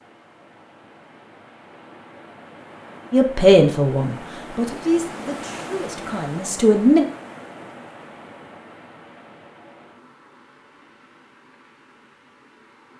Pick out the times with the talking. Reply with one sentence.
The talking can be heard from 3.1 to 7.0 s.